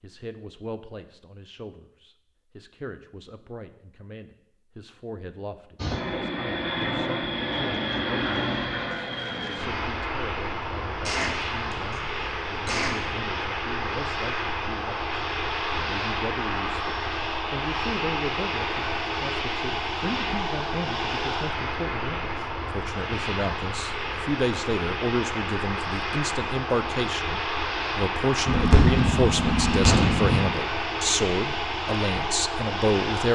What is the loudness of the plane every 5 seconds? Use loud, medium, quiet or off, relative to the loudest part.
off, loud, loud, loud, loud, loud, loud.